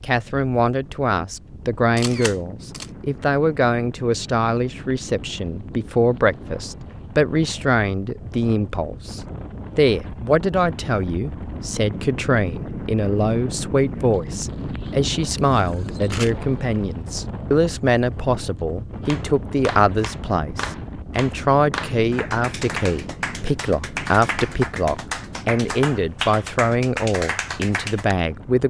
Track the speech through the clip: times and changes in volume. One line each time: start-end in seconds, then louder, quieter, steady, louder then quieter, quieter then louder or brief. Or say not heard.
0.0-28.6 steady.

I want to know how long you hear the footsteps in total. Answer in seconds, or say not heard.
not heard.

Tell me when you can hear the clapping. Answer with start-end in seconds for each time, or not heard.
19.1-28.1.